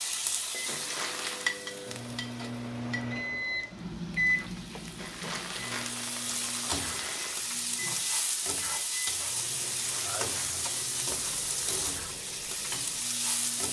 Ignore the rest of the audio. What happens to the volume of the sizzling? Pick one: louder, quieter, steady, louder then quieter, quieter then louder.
quieter then louder.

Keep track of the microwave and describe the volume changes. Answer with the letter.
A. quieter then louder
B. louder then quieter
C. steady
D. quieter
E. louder
B.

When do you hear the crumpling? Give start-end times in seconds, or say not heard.
0.7-1.4, 5.0-7.4, 9.6-11.8.